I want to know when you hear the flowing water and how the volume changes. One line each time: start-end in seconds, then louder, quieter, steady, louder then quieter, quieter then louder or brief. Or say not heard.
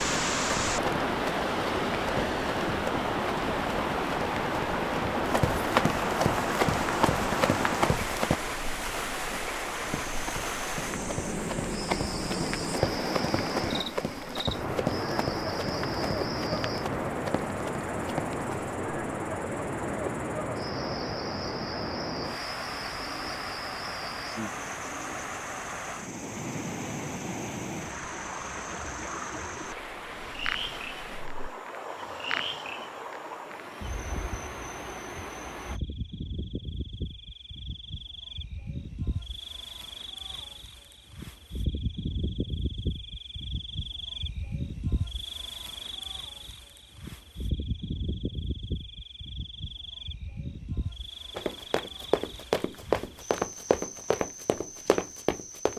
0.0-35.8 quieter.